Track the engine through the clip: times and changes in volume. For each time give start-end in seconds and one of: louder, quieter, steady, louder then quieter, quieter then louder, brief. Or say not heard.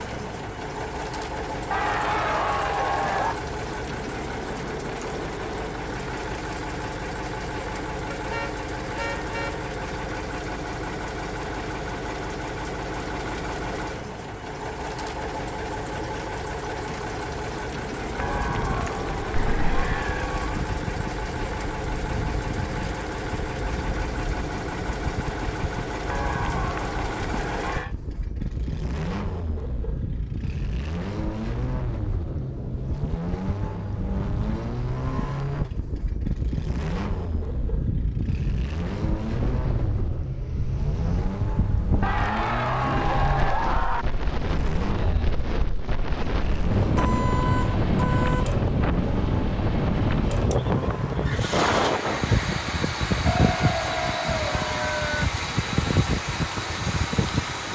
0.0-57.7 steady.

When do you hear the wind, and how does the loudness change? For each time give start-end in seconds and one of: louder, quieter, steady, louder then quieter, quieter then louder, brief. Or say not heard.
18.2-57.7 louder.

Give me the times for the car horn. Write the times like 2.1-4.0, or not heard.
8.1-9.7, 19.4-19.9, 46.9-48.5.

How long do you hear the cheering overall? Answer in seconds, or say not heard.
10 s.